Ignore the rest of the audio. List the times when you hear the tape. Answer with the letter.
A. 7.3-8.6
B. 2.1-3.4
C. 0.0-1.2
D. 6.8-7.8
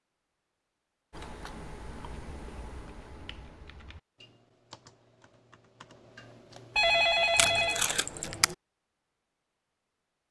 A.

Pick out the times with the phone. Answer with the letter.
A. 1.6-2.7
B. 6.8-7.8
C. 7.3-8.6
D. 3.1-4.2
B.